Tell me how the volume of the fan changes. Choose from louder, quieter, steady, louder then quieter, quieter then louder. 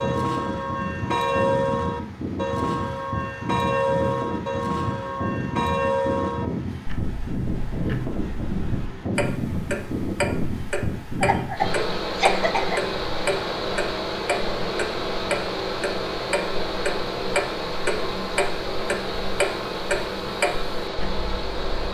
steady.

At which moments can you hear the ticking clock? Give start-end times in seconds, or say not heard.
0.0-21.8.